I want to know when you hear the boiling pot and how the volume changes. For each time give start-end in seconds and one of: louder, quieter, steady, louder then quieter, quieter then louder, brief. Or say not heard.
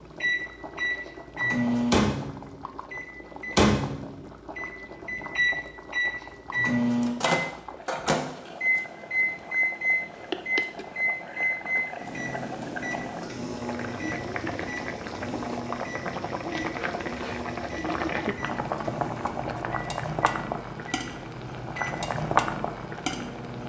0.0-23.6 louder.